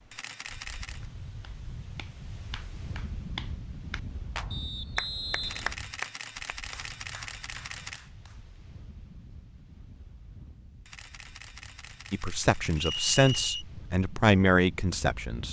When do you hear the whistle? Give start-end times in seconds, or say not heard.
4.5-5.8, 12.8-13.7.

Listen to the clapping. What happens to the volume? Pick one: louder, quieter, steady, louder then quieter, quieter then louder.
louder then quieter.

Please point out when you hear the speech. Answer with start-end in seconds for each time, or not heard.
12.1-15.4.